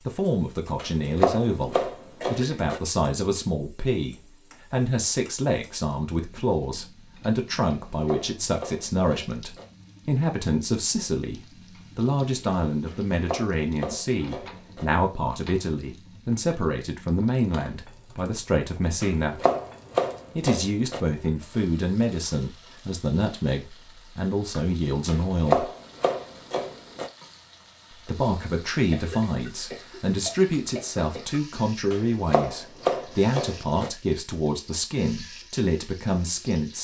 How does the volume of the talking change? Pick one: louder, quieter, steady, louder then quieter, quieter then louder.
steady.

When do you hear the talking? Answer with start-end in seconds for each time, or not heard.
0.1-19.4, 20.4-25.7, 27.9-36.7.